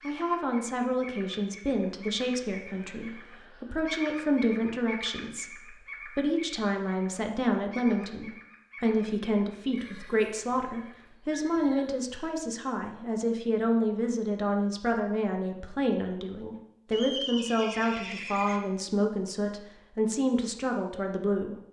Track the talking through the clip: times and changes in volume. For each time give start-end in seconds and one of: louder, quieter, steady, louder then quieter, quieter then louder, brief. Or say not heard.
0.0-21.6 steady.